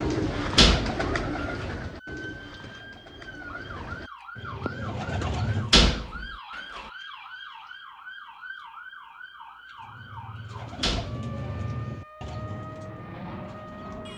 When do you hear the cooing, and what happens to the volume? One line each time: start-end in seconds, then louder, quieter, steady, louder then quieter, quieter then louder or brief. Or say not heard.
0.0-5.8 quieter then louder
9.8-14.1 louder then quieter.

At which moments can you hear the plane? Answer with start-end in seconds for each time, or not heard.
12.2-14.1.